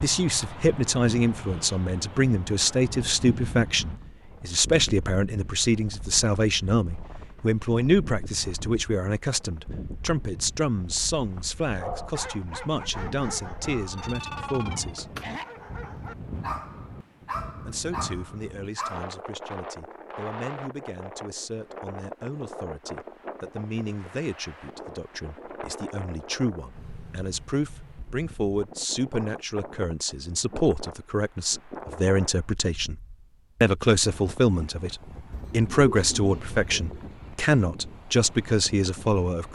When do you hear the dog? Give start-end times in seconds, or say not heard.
11.8-19.1.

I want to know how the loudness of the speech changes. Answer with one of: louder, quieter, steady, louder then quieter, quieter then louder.
quieter then louder.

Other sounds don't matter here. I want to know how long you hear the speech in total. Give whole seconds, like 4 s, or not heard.
36 s.